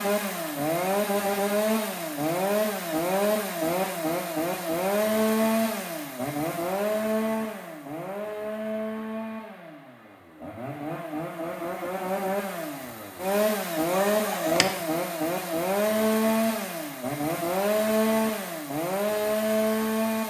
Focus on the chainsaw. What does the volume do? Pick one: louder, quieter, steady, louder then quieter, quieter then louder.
quieter then louder.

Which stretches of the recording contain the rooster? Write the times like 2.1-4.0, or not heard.
13.9-14.7.